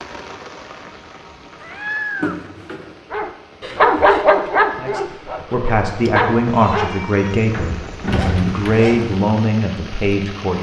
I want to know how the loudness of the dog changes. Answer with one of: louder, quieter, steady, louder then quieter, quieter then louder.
quieter.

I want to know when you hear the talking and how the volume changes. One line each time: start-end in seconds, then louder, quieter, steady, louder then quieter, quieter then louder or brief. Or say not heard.
4.8-10.5 steady.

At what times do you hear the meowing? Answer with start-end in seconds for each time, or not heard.
1.6-2.5, 6.0-7.4.